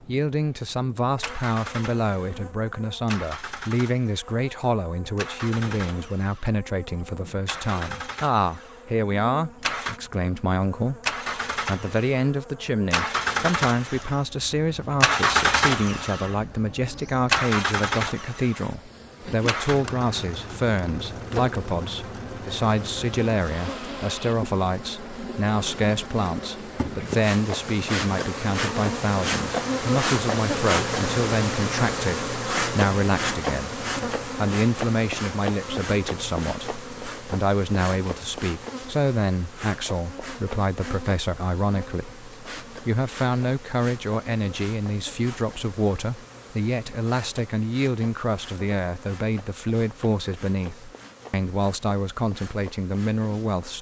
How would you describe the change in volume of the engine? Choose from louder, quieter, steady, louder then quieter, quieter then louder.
louder then quieter.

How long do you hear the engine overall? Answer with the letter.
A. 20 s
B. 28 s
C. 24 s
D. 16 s
C.